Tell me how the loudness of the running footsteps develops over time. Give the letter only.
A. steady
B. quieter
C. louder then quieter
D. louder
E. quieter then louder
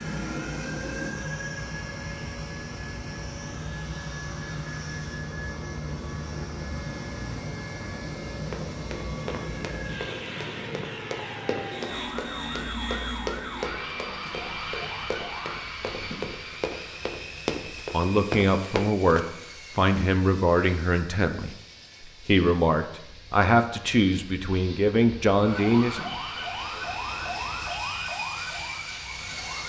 D.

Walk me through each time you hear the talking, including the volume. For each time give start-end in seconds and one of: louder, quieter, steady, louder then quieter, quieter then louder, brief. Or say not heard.
17.9-26.0 steady.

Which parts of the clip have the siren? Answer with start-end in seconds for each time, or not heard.
0.0-15.7, 25.4-29.6.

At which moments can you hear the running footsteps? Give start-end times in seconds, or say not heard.
8.5-19.3.